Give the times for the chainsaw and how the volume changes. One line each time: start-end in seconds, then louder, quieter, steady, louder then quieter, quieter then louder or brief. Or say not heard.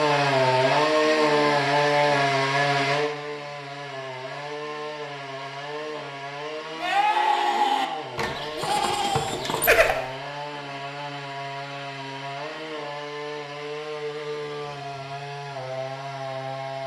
0.0-16.8 quieter.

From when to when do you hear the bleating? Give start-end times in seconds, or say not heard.
6.8-9.9.